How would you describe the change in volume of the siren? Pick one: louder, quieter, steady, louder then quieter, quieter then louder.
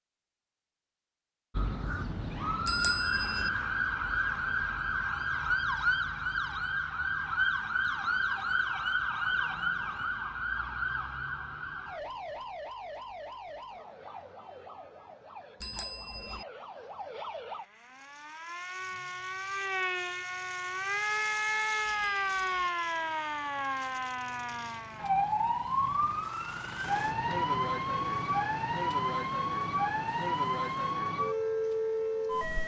quieter then louder.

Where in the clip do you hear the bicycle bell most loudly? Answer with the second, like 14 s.
3 s.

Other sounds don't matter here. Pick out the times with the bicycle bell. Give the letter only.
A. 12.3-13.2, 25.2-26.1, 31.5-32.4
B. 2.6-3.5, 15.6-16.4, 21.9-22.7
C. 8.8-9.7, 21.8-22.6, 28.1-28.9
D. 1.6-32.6
B.